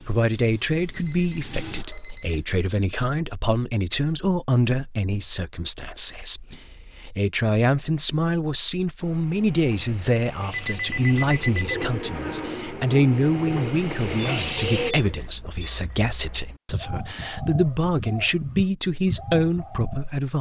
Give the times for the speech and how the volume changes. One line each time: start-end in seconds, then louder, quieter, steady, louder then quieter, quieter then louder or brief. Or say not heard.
0.0-20.3 steady.